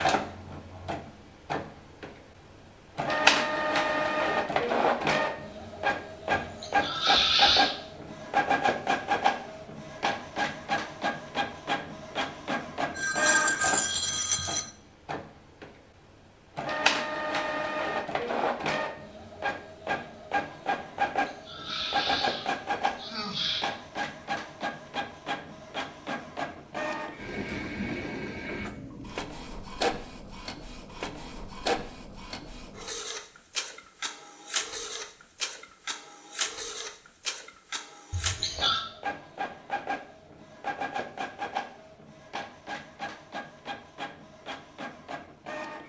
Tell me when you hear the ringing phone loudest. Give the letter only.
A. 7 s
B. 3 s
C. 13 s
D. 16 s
C.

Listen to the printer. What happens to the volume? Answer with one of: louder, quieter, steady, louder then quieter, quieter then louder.
quieter.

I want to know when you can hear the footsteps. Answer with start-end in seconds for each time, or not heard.
not heard.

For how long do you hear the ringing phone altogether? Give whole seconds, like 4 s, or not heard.
2 s.